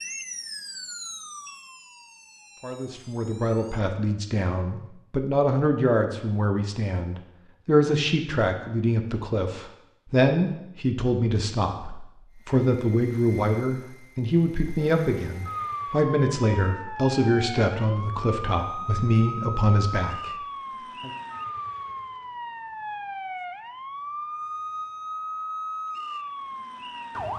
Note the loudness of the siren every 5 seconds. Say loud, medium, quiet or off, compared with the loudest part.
medium, off, off, loud, loud, loud.